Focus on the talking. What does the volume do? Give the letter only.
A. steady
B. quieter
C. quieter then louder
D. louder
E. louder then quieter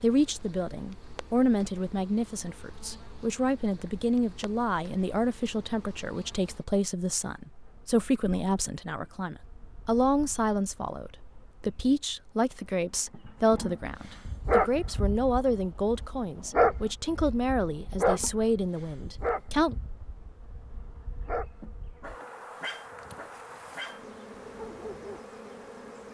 A.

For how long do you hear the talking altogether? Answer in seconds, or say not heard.
20 s.